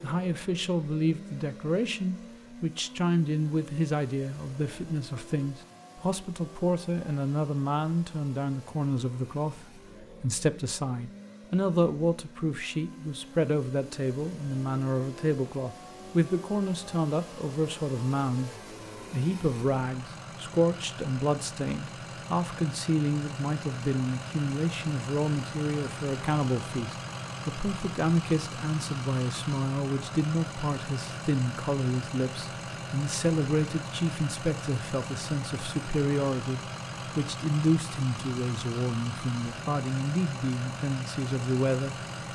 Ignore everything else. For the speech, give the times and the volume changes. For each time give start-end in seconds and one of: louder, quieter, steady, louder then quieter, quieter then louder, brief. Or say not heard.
0.0-42.0 steady.